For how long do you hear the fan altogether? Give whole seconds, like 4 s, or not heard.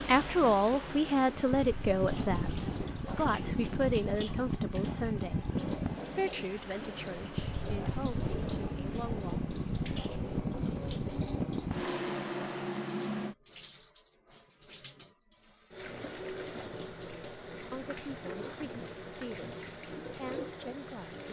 13 s.